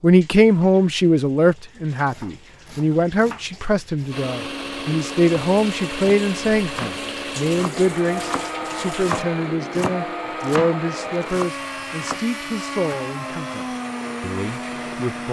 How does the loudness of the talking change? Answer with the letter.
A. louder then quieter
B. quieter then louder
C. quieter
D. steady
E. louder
C.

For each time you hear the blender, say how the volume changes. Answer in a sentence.
The blender can be heard from 4.0 to 15.2 s, at a steady volume.